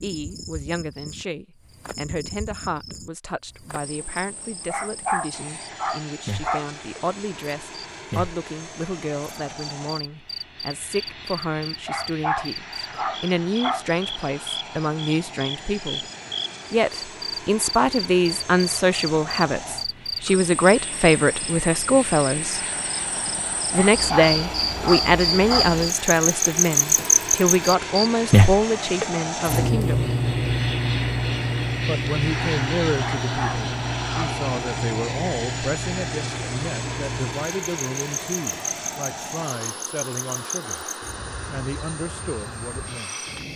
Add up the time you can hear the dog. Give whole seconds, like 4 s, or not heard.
7 s.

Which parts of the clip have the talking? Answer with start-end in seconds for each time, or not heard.
0.0-16.0, 16.7-22.6, 23.7-30.1, 31.9-40.9, 41.5-43.1.